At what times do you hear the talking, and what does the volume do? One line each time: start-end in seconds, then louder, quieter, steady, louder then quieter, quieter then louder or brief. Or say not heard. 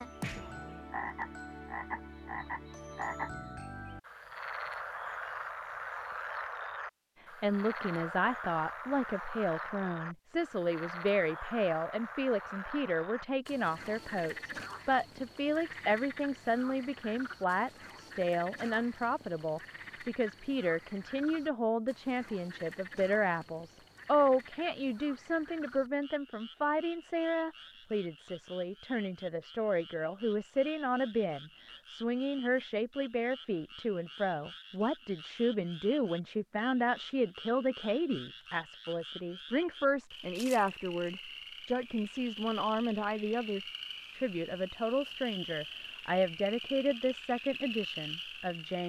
7.2-48.8 steady.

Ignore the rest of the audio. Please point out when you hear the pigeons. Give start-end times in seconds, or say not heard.
not heard.